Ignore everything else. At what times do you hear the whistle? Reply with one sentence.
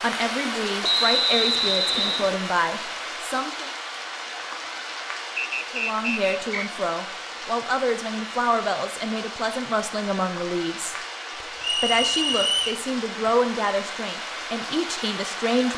The whistle can be heard from 0.8 to 2.4 s, from 5.3 to 6.7 s and from 11.6 to 12.8 s.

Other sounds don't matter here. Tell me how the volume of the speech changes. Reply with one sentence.
The volume of the speech stays about the same.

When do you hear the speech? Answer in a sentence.
You can hear the speech from 0.0 to 3.7 s and from 5.7 to 15.7 s.